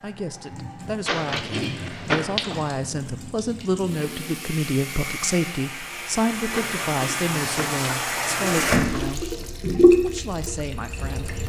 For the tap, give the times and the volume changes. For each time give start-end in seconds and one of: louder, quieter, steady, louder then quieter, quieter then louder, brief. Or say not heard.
0.0-11.4 louder.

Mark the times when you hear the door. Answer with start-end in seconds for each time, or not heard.
1.1-2.7, 6.5-7.8.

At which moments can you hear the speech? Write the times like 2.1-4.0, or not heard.
0.0-11.4.